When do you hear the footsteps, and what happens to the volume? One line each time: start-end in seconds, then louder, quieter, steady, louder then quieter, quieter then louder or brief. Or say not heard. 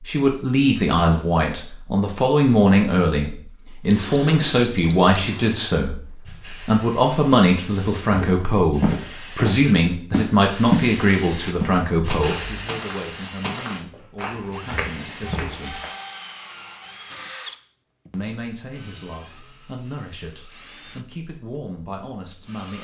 8.1-10.9 brief
11.6-15.9 steady.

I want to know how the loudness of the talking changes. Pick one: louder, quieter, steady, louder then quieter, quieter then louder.
quieter.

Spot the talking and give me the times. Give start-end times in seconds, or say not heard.
0.0-15.8, 18.1-22.7.